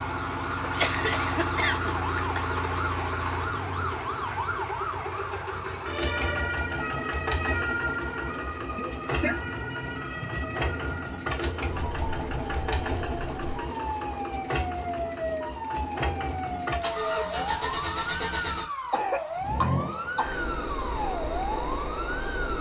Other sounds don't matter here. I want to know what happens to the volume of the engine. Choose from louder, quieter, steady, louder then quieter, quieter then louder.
steady.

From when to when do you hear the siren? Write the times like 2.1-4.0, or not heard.
0.0-22.5.